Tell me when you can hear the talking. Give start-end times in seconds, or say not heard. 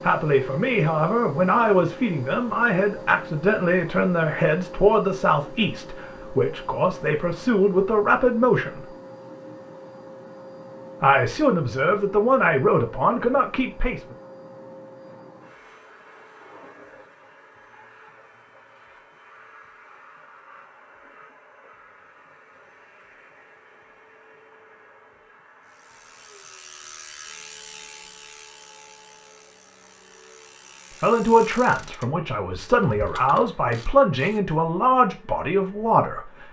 0.0-8.9, 11.0-14.2, 31.0-36.4.